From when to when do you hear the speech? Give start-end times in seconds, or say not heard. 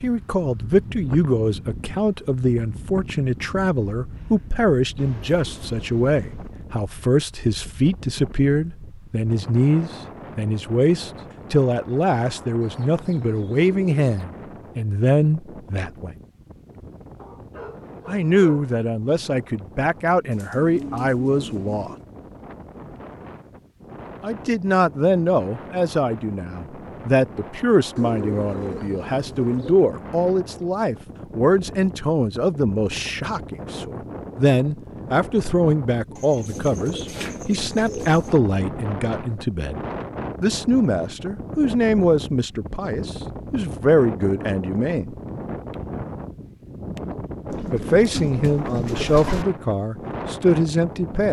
0.0-16.1, 18.1-21.9, 24.2-39.8, 40.4-45.1, 47.7-51.2.